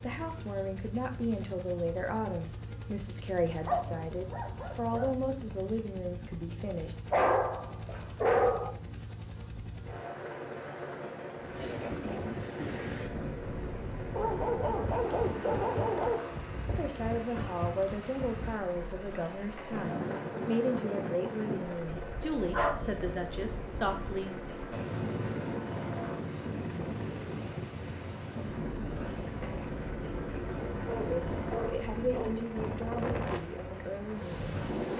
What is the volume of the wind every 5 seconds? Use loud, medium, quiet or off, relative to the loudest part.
off, off, loud, loud, loud, loud, loud.